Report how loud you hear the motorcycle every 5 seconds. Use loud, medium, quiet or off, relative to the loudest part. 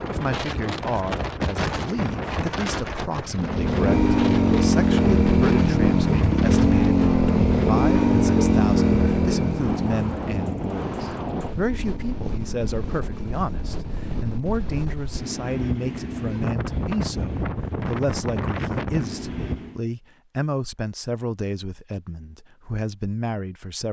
loud, loud, quiet, off, off.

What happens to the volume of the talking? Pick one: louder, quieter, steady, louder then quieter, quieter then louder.
steady.